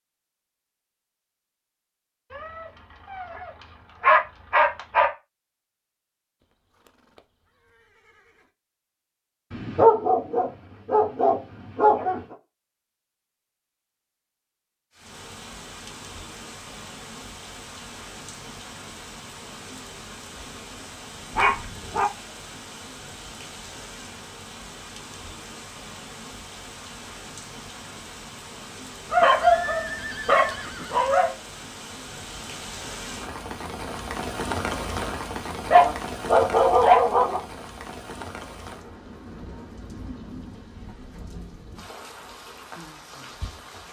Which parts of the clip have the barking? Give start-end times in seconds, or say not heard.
2.3-5.1, 9.5-12.3, 21.3-22.1, 29.1-31.3, 35.7-37.4.